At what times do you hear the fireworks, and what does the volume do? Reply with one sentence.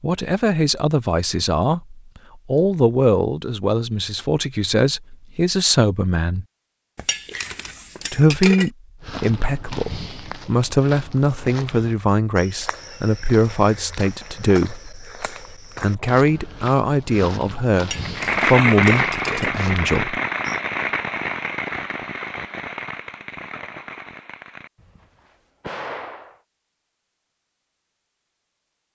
The fireworks can be heard from 18.0 to 26.4 s, getting quieter.